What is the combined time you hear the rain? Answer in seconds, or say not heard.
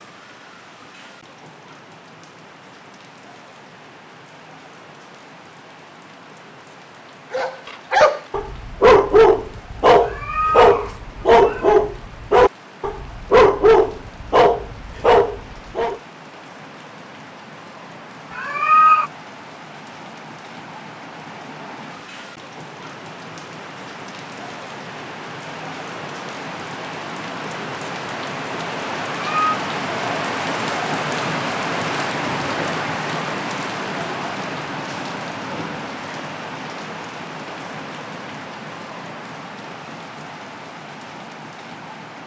42 s.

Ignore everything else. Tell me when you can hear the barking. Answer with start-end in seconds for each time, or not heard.
7.3-16.0.